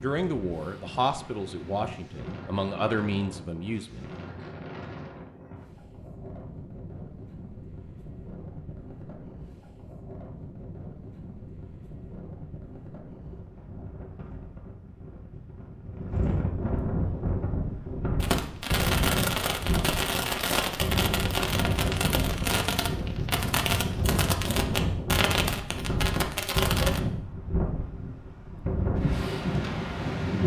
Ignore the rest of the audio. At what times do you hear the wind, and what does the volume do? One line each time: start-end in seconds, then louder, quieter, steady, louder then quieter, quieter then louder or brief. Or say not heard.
0.0-30.4 louder.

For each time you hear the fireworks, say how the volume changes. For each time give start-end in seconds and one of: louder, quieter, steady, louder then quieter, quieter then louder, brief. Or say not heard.
18.2-27.0 steady.